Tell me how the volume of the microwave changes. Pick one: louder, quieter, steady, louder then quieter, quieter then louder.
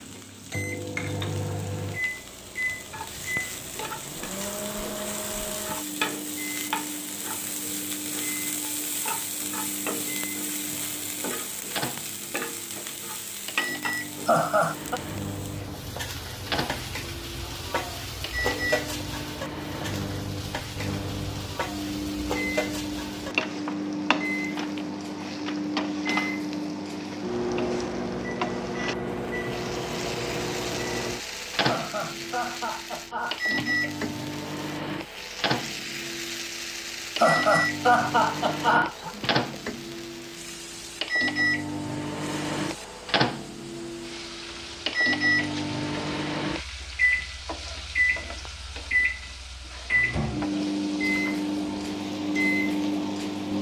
louder.